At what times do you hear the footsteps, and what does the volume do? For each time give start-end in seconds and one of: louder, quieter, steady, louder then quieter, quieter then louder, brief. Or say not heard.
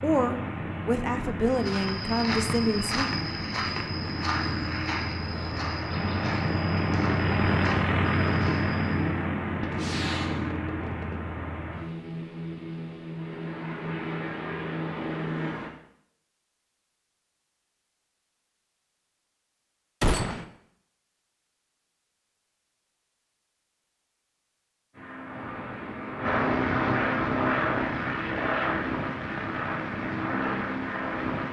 1.5-9.0 quieter.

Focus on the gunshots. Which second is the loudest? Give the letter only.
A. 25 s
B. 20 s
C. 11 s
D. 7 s
B.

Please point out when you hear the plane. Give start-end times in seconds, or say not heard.
0.0-15.7, 24.9-31.4.